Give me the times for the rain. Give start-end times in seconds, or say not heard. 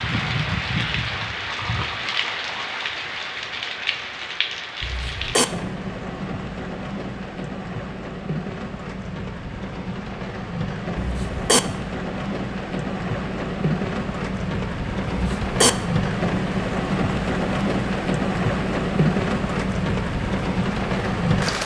0.0-21.6.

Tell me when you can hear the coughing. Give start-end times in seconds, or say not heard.
4.8-5.5, 10.9-11.6, 15.1-15.7.